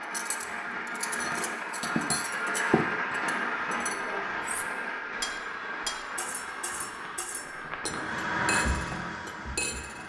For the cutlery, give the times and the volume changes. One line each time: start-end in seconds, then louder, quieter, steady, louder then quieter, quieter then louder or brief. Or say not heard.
0.0-10.0 quieter then louder.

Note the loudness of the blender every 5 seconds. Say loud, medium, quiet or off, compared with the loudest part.
loud, medium.